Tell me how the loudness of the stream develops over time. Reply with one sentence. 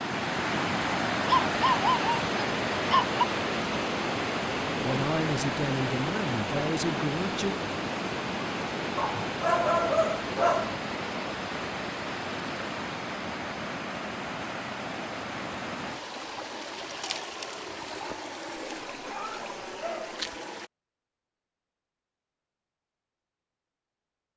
The loudness of the stream goes down.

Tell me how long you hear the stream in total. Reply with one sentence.
You can hear the stream for 21 seconds altogether.